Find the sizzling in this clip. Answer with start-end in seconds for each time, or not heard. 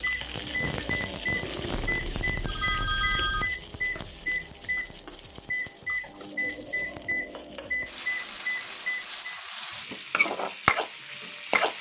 0.0-11.7.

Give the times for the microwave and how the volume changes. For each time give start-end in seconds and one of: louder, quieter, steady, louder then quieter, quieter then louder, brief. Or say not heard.
0.0-9.4 steady.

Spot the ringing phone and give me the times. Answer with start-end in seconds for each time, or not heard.
1.4-3.5.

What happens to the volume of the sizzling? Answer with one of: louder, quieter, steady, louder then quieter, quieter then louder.
quieter then louder.